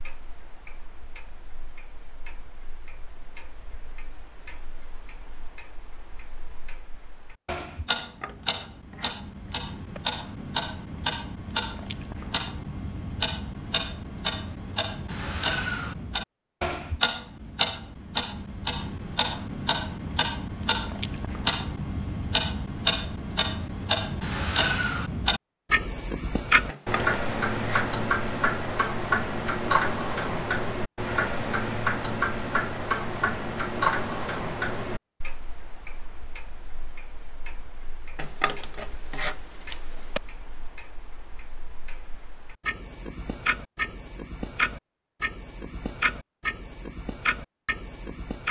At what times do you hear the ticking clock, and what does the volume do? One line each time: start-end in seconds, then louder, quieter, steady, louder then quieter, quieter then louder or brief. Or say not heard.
0.0-48.4 louder then quieter.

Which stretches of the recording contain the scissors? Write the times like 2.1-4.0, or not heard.
8.0-10.0, 26.6-27.9, 38.1-40.2.